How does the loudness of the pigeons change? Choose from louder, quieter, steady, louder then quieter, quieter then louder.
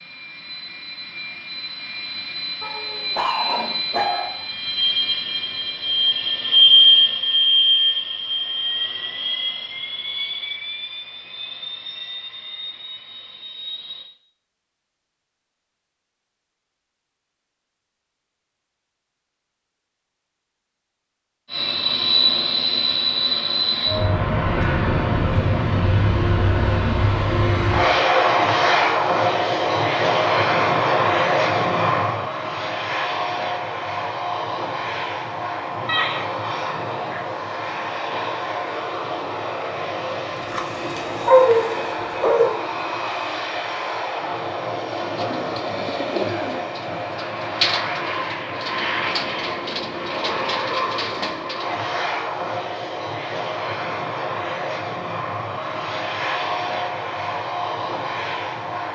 quieter then louder.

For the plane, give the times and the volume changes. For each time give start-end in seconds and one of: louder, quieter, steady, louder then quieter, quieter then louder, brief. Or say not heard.
0.0-14.1 louder then quieter
21.5-58.9 quieter.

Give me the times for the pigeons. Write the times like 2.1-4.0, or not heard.
45.0-51.8.